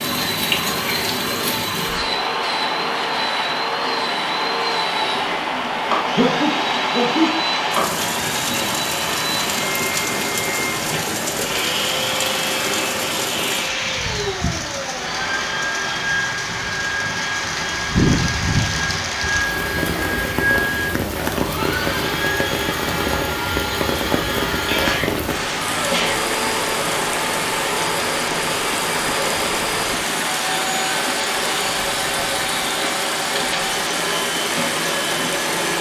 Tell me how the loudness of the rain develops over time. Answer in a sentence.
The loudness of the rain stays about the same.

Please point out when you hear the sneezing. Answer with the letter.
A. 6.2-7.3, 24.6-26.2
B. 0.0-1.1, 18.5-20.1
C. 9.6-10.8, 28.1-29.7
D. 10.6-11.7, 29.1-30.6
A.